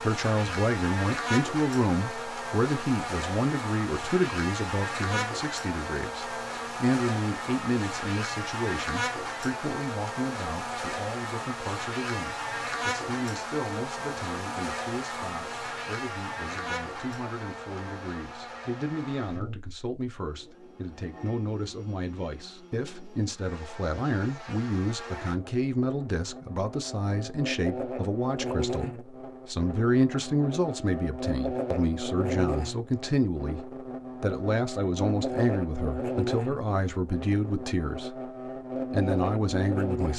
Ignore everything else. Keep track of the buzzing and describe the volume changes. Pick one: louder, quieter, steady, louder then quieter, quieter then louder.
quieter then louder.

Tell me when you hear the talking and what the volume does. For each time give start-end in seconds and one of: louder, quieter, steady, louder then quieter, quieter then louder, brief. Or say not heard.
0.0-38.3 quieter then louder
38.9-40.1 brief.